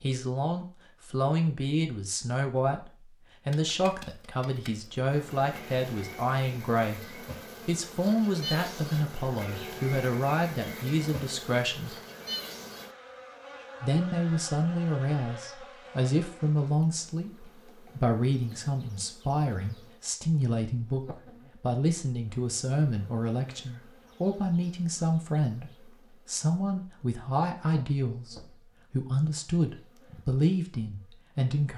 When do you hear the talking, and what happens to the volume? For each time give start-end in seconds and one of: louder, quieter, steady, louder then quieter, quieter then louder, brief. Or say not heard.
0.0-11.9 steady
13.8-31.7 steady.